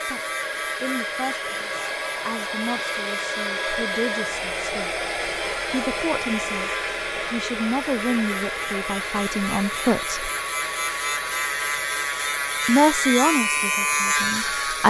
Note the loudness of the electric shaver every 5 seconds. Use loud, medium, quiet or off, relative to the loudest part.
medium, medium, loud.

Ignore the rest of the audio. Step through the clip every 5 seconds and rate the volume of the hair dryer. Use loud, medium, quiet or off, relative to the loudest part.
loud, loud, medium.